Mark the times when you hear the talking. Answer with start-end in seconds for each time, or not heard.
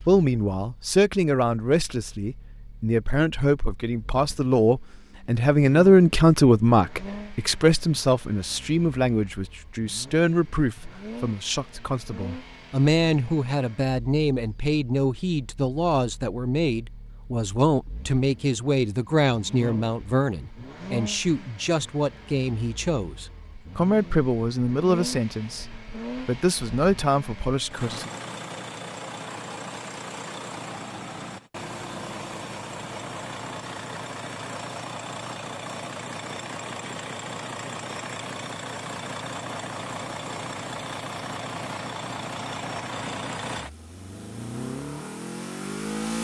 0.1-28.1.